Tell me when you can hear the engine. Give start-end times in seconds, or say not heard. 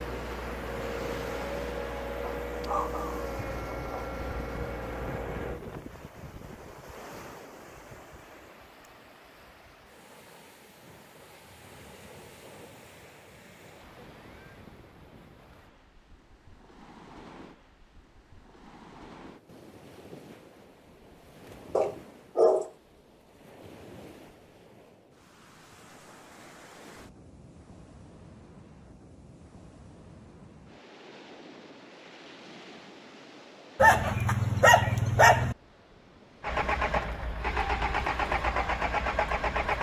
0.0-5.6, 36.4-39.7.